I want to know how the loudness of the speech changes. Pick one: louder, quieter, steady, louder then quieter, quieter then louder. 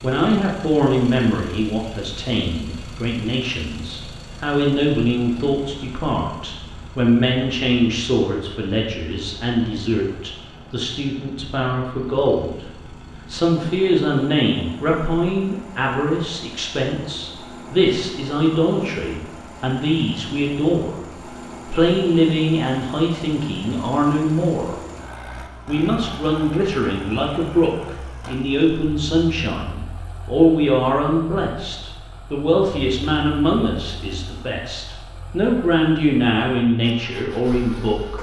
steady.